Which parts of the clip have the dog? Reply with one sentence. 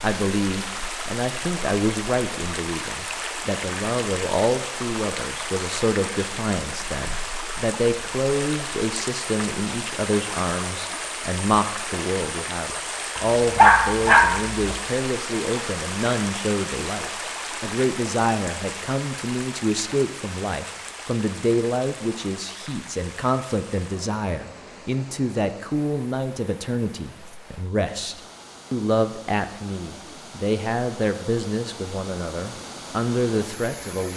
The dog can be heard from 13.2 to 14.8 s.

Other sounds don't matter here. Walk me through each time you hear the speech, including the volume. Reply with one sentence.
You can hear the speech from 0.0 to 34.1 s, at a steady volume.